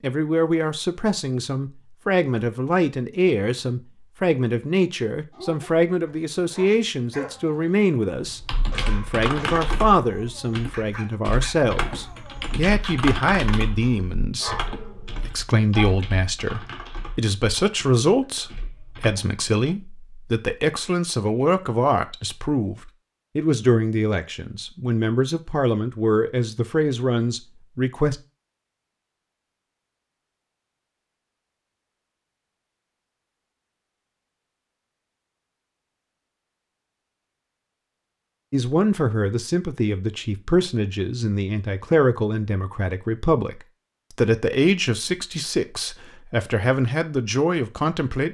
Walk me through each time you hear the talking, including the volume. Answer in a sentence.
You can hear the talking from 0.0 to 28.1 s, at a steady volume; and from 38.5 to 48.2 s, at a steady volume.